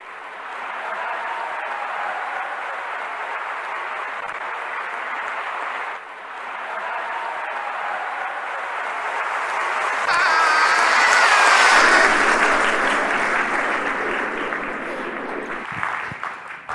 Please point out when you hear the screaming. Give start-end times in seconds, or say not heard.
10.1-12.1.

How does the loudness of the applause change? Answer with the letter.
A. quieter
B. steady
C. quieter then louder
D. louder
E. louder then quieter
E.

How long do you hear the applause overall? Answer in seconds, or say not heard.
17 s.